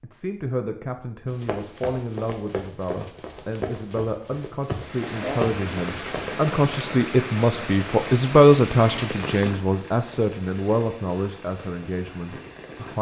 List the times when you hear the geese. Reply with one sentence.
The geese can't be heard in this clip.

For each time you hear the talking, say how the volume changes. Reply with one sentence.
The talking can be heard from 0.0 to 12.9 s, getting louder then quieter.